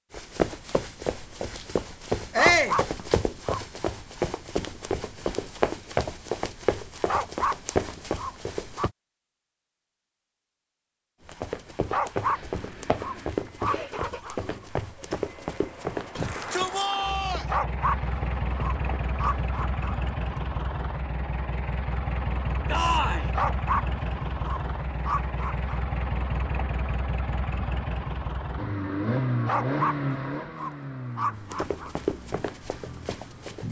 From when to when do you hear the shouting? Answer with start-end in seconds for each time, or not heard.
2.3-2.8, 16.1-17.4, 22.7-23.3.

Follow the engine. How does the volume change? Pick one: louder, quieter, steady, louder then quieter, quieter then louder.
louder.